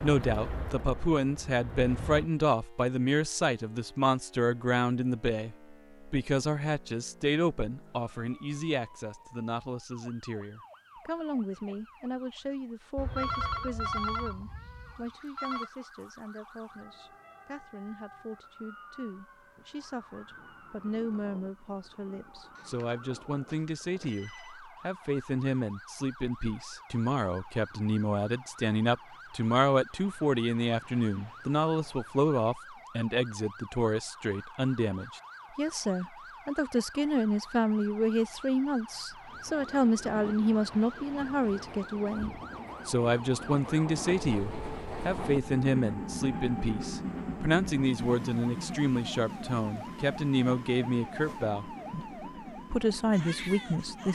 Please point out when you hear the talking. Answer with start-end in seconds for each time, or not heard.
0.0-54.1.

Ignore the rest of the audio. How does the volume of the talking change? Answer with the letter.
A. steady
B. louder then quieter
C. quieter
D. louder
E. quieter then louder
E.